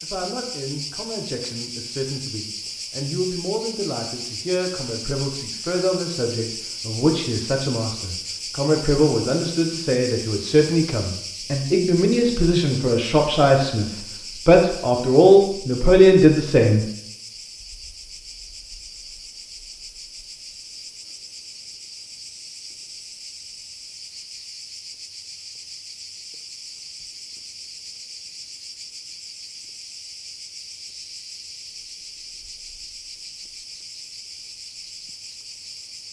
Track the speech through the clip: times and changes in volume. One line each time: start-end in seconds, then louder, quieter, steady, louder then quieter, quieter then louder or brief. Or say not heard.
0.0-16.9 louder.